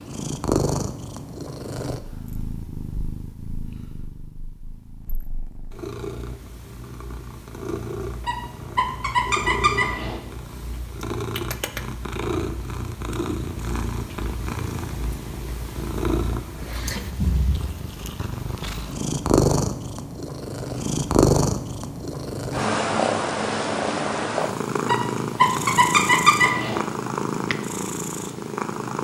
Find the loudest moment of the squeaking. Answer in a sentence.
The volume of the squeaking peaks at 26 seconds.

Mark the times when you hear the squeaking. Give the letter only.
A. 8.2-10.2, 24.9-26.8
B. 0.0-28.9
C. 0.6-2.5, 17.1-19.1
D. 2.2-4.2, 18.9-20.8
A.